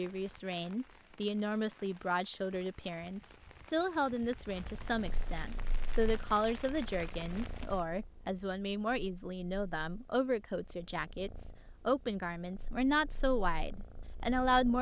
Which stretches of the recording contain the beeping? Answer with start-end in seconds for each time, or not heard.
not heard.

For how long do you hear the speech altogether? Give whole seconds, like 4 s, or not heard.
15 s.